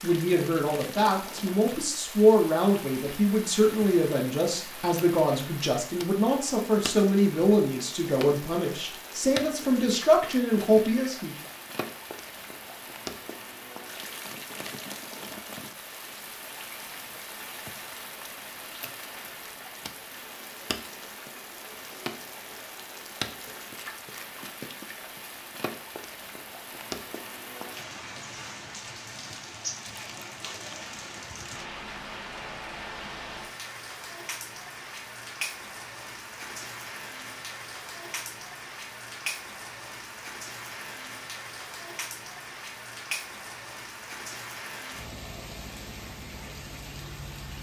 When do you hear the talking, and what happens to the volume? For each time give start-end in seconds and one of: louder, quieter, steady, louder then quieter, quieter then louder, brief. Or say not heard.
0.0-11.3 steady.